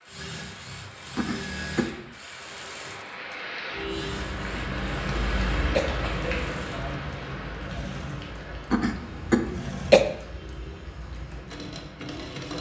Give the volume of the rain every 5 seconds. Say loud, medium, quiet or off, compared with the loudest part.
loud, loud, quiet.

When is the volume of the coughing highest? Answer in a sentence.
The volume of the coughing peaks at 10 seconds.